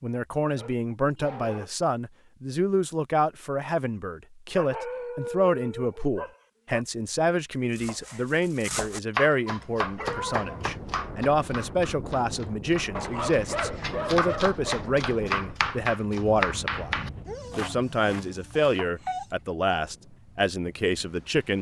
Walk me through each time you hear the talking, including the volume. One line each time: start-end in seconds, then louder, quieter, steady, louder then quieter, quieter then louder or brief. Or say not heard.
0.0-21.5 steady.